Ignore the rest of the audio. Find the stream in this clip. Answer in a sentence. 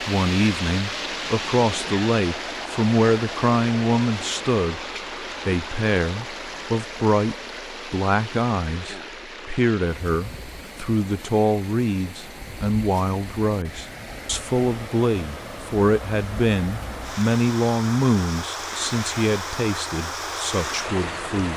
You can hear the stream from 0.0 to 21.5 s.